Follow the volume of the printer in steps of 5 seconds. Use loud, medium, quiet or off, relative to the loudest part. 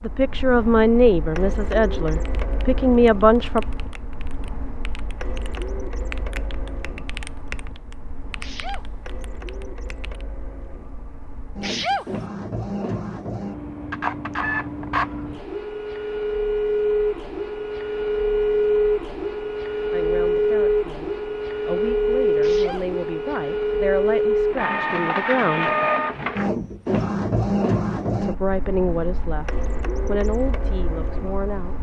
quiet, quiet, medium, loud, loud, loud, quiet.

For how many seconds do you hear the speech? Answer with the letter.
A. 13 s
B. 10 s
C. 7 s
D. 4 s
A.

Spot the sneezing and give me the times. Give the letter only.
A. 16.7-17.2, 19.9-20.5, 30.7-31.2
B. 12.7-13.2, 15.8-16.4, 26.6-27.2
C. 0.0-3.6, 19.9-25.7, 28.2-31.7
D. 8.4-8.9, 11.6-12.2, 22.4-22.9
D.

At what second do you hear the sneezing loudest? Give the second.
12 s.